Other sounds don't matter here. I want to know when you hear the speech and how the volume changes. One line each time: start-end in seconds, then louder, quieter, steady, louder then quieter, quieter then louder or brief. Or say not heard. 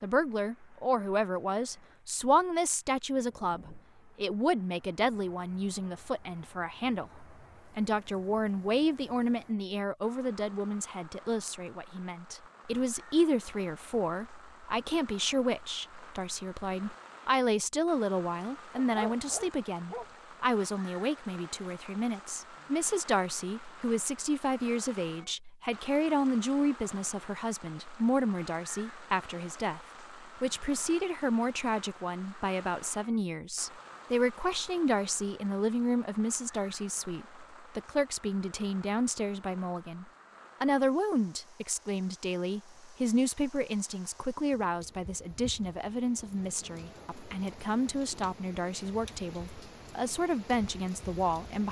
0.0-51.6 steady.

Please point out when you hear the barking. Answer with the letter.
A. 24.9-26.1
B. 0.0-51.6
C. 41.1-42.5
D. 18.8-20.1
D.